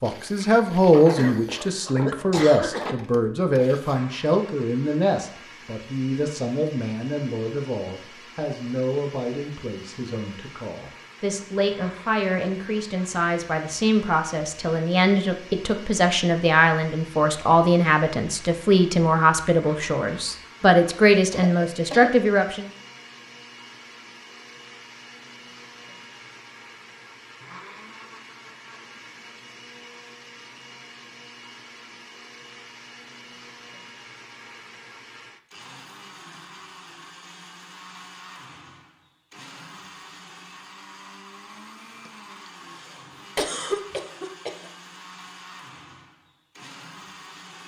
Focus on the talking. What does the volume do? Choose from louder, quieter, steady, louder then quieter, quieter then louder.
quieter then louder.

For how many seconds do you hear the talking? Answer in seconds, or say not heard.
23 s.